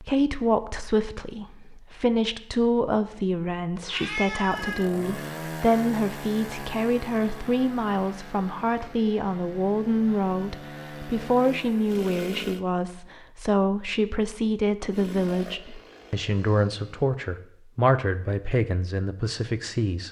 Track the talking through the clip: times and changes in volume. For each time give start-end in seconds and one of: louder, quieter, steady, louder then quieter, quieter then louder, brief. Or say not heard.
0.0-20.0 steady.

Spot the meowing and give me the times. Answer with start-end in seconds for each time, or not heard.
3.8-4.8.